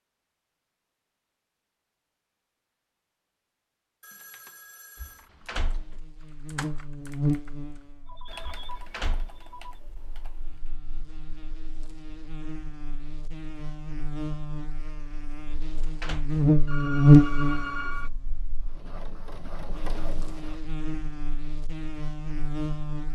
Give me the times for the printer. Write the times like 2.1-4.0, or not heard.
18.6-20.6.